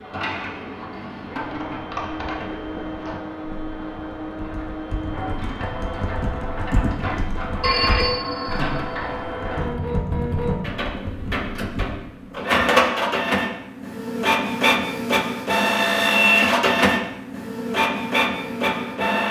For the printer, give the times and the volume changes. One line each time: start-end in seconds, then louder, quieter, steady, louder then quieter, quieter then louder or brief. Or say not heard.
0.0-19.2 louder.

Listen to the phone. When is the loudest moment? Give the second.
8 s.